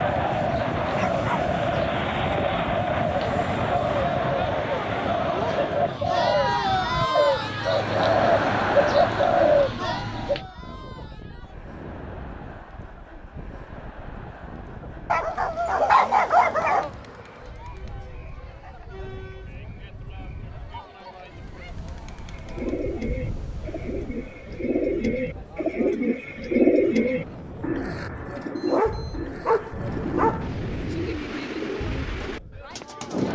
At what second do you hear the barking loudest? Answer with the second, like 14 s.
16 s.